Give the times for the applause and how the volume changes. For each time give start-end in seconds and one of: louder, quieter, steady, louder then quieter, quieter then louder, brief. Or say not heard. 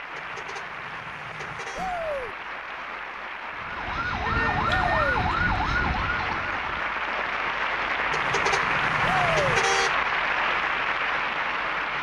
0.0-11.9 louder.